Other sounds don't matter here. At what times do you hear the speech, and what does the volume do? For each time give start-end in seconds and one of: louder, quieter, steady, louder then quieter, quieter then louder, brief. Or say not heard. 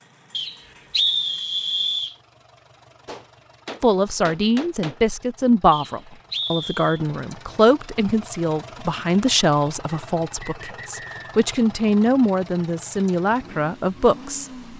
3.8-14.4 steady.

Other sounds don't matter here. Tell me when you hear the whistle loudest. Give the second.
1 s.